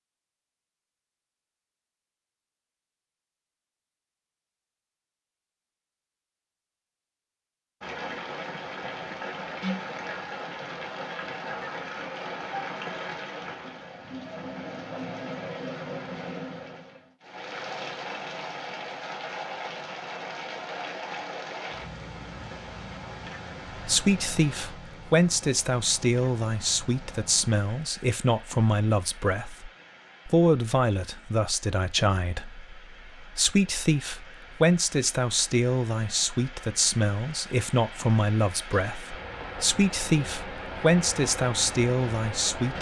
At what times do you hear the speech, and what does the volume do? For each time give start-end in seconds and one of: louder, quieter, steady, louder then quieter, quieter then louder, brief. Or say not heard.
23.9-42.7 steady.